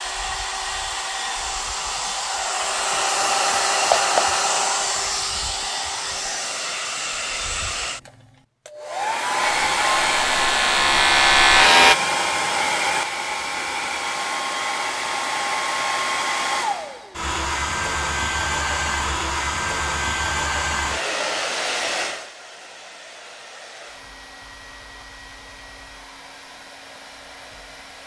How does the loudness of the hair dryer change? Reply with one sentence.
The loudness of the hair dryer goes down.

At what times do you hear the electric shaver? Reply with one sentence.
You can hear the electric shaver from 9.6 to 11.9 s.